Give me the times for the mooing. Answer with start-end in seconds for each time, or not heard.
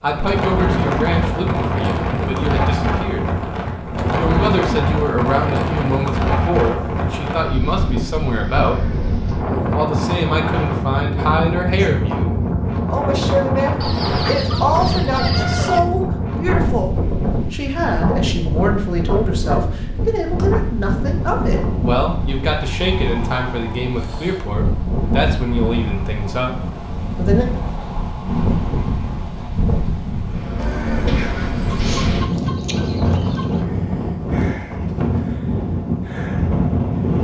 8.7-9.8, 30.6-31.9.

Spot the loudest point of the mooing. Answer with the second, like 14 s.
31 s.